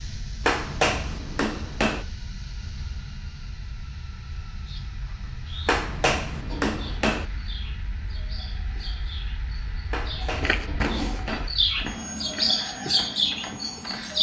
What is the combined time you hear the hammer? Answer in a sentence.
You can hear the hammer for 5 seconds altogether.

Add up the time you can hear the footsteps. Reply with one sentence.
The footsteps can be heard for 4 seconds in total.